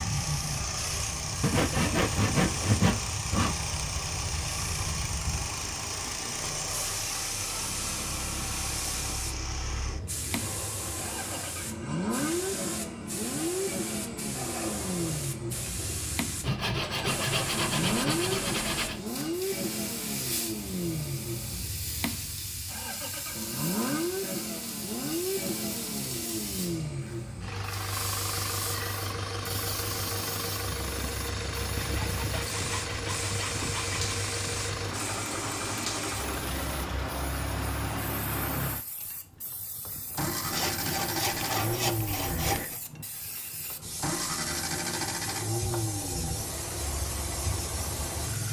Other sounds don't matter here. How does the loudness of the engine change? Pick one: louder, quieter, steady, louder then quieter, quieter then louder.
steady.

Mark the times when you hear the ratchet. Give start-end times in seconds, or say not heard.
not heard.